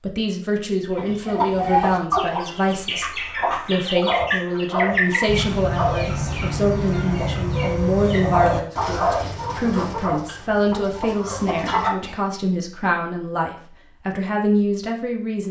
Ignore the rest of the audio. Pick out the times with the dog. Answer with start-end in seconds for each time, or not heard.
4.0-6.0, 8.3-10.2.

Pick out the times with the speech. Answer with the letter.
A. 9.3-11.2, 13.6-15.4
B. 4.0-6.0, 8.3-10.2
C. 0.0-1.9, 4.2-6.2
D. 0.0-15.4
D.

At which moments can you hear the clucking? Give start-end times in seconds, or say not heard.
0.9-12.2.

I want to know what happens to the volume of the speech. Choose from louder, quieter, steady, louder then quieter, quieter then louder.
steady.